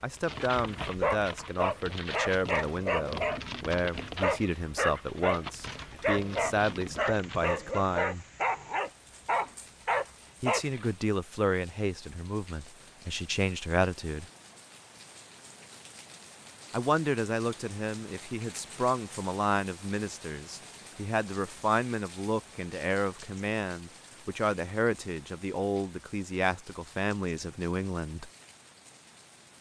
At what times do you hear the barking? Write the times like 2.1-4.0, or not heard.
0.1-10.9.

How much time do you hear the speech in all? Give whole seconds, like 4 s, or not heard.
24 s.